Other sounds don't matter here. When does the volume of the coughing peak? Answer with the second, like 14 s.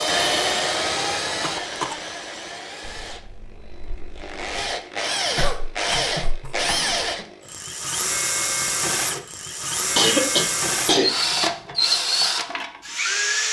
10 s.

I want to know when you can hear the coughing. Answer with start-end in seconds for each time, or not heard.
1.4-1.9, 5.3-7.2, 9.9-11.1.